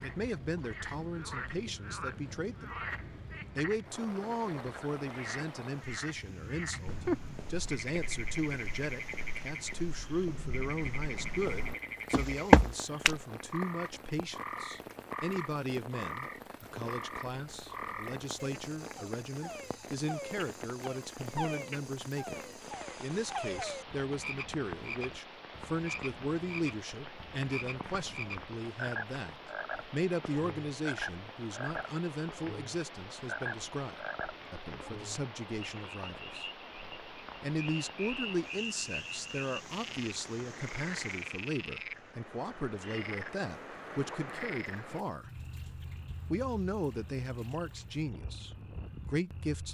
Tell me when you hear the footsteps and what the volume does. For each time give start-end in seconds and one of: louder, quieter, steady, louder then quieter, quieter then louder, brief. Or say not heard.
6.8-13.2 louder.